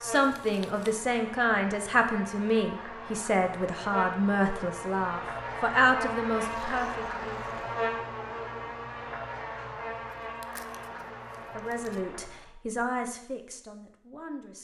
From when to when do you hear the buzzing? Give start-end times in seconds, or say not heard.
0.0-12.5.